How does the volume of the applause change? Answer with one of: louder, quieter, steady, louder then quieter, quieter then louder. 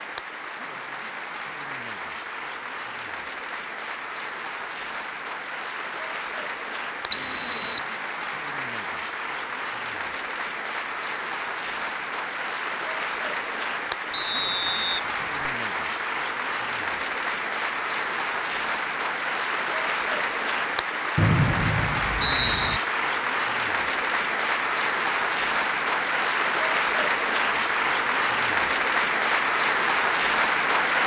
louder.